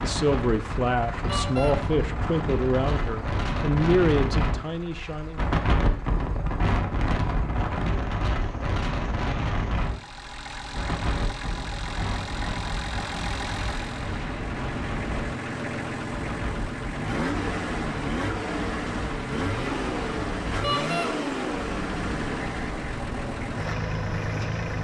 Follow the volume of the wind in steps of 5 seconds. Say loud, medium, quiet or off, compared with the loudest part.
loud, loud, medium, medium, medium.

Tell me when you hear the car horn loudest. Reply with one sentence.
The loudest moment of the car horn is at 21 seconds.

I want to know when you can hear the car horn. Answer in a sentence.
The car horn can be heard from 1.2 to 1.8 s and from 20.6 to 21.1 s.